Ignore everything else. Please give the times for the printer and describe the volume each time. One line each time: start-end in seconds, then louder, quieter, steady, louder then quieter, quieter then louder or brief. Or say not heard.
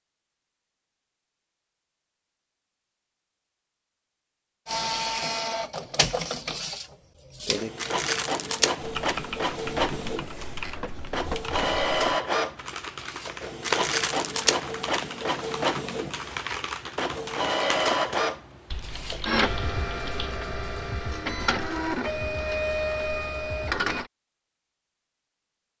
4.7-24.1 steady.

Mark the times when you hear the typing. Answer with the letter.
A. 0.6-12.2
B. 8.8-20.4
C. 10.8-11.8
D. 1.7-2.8
B.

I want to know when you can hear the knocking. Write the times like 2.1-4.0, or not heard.
10.8-11.8.